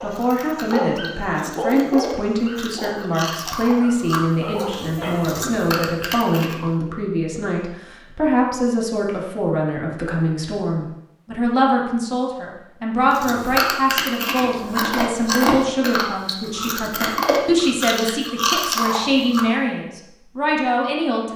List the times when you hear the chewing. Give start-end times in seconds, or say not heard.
0.1-6.6, 13.1-19.4.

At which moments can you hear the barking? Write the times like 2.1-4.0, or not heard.
0.0-5.5.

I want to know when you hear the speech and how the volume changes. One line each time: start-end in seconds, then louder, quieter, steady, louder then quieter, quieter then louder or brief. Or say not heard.
0.0-21.3 steady.